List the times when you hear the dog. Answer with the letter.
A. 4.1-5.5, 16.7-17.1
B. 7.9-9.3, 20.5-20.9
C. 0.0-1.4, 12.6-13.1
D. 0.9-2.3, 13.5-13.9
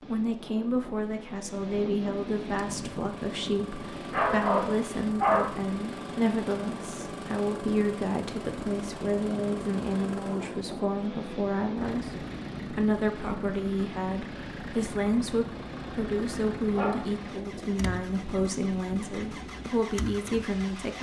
A.